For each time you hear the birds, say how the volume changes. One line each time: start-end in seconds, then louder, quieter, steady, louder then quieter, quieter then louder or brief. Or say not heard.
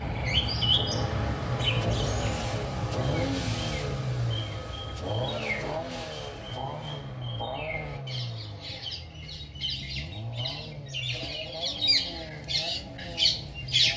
0.0-13.9 quieter then louder.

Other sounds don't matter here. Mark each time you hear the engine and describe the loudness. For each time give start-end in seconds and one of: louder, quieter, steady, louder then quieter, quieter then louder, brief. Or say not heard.
0.0-13.9 quieter.